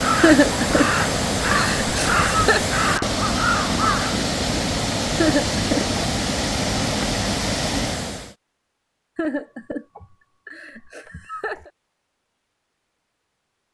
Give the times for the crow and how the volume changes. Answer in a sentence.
You can hear the crow from 0.0 to 4.2 s, at a steady volume.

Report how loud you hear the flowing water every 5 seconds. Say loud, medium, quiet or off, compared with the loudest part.
loud, loud, off.